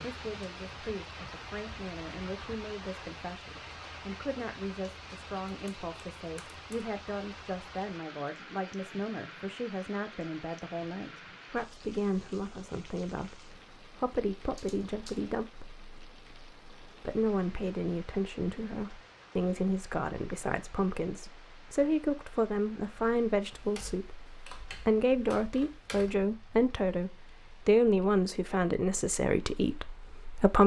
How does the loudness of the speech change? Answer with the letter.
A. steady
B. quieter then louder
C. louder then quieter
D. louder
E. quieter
D.